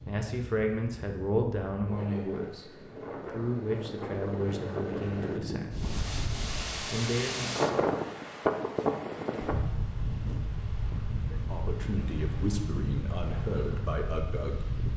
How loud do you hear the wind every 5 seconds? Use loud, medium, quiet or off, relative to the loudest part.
medium, loud, medium.